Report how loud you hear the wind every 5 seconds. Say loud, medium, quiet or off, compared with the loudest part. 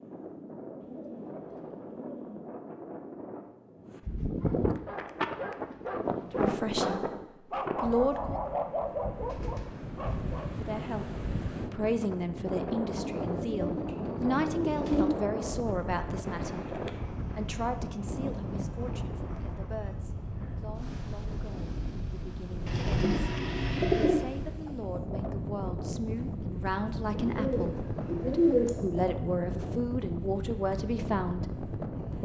loud, loud, loud, loud, medium, loud, loud.